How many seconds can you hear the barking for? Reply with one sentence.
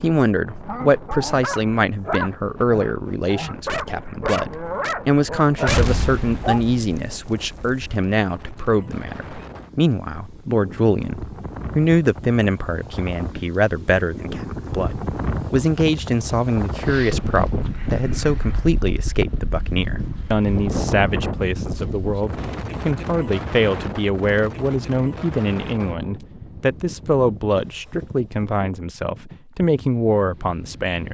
You can hear the barking for 6 seconds altogether.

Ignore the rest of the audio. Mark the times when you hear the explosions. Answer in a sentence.
You can hear the explosions from 5.7 to 7.9 s.